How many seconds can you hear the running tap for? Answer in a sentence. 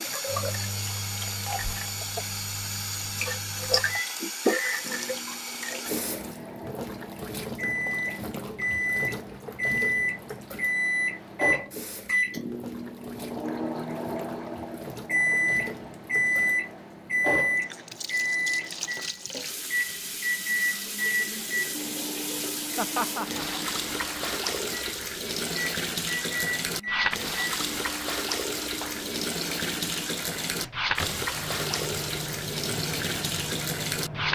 The running tap can be heard for 34 seconds in total.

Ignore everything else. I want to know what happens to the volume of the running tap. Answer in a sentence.
The volume of the running tap goes down, then up.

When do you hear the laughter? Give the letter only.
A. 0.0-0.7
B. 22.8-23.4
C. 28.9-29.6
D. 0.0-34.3
B.